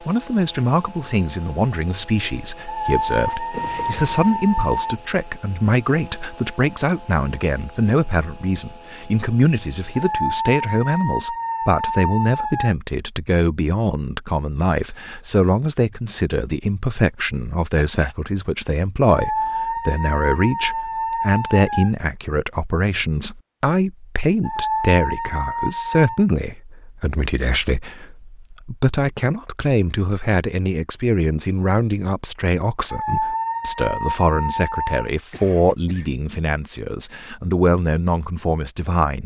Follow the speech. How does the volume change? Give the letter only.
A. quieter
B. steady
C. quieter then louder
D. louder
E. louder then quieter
B.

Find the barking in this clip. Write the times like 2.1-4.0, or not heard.
2.6-5.0, 9.9-12.8, 19.1-21.9, 24.4-26.2, 32.9-35.0.